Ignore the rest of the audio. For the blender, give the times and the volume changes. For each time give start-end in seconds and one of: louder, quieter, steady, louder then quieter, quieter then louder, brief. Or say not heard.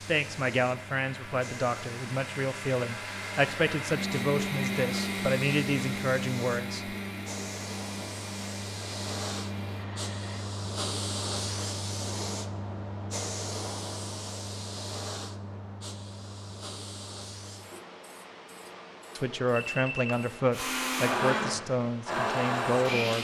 0.0-10.4 louder then quieter
20.5-23.1 brief.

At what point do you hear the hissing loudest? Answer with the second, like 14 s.
11 s.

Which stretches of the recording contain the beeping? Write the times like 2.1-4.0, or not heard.
19.5-20.2.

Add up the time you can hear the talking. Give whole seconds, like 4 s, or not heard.
11 s.